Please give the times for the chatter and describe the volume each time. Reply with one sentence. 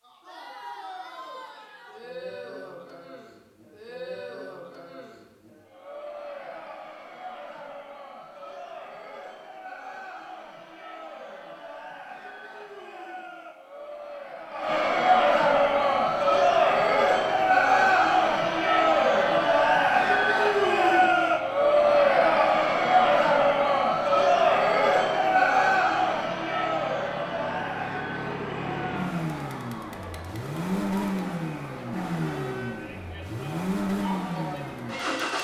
You can hear the chatter from 0.0 to 35.3 s, getting louder then quieter.